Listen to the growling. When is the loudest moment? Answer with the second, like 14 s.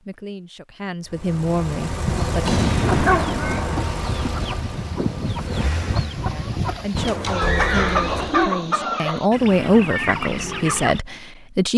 3 s.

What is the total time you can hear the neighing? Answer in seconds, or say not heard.
3 s.